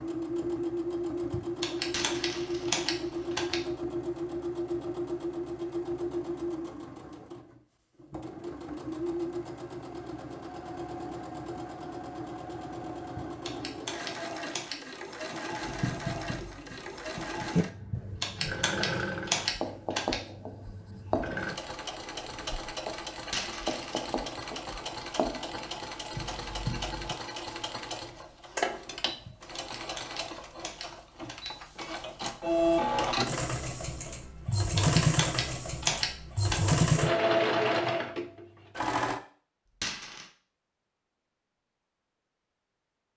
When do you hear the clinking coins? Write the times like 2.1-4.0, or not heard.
1.8-3.4, 23.1-24.0, 39.6-40.2.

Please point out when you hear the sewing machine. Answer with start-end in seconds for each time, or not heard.
0.0-39.2.